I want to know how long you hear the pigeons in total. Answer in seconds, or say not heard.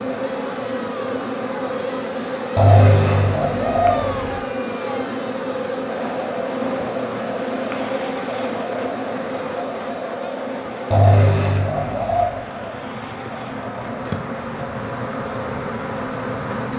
3 s.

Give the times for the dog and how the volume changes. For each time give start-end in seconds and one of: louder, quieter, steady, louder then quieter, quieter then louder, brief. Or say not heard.
not heard.